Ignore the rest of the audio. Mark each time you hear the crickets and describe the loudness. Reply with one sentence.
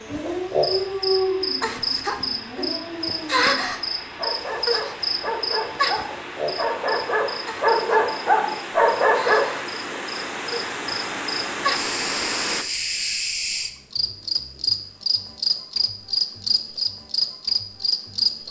You can hear the crickets from 0.0 to 18.4 s, getting quieter then louder.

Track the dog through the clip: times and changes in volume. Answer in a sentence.
You can hear the dog from 0.1 to 9.4 s, getting quieter then louder.